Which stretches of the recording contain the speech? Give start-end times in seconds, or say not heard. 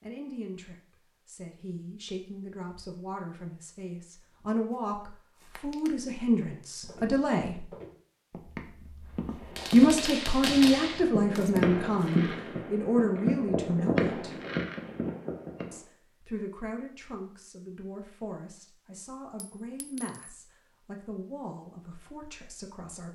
0.0-7.7, 9.7-14.3, 15.7-23.0.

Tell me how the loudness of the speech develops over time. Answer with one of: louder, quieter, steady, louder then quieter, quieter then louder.
louder then quieter.